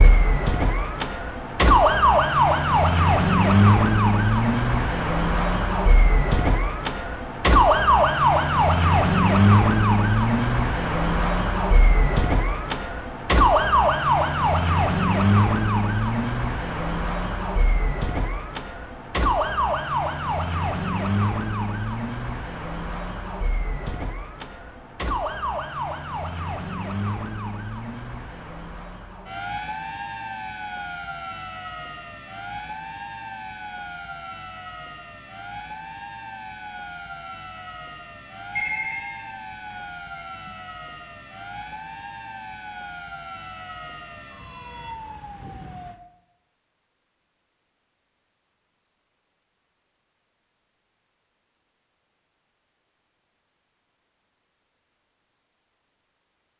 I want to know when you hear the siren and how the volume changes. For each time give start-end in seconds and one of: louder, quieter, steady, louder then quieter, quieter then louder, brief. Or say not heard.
0.0-46.0 quieter.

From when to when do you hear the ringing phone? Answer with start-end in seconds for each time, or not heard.
38.5-40.5.